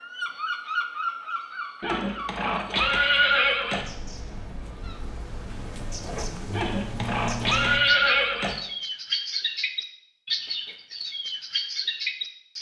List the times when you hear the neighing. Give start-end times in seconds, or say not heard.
1.8-3.9, 6.5-8.6.